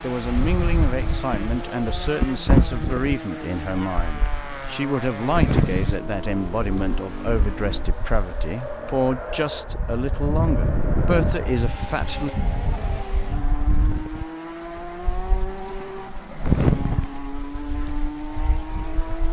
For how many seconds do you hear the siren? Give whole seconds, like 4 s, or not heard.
not heard.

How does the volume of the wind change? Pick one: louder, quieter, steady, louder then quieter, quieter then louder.
quieter then louder.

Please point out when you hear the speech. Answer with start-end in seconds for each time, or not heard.
0.0-12.3.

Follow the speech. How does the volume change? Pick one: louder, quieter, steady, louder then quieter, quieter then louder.
steady.